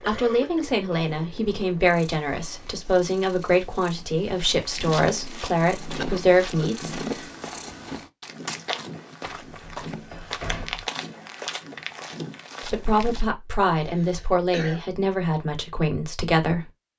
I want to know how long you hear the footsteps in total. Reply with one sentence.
The footsteps can be heard for 9 seconds in total.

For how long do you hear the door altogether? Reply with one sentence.
The door can be heard for 2 seconds in total.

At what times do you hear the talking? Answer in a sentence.
The talking can be heard from 0.1 to 7.2 s and from 12.7 to 16.6 s.